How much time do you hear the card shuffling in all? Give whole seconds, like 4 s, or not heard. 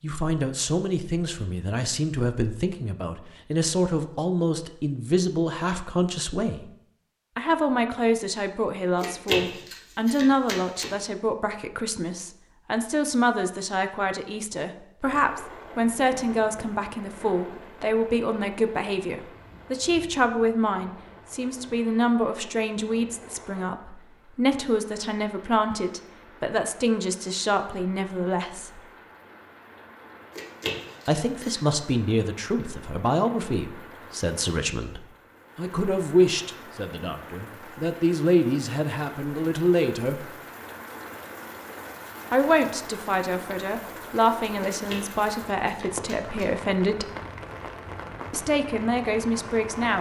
5 s.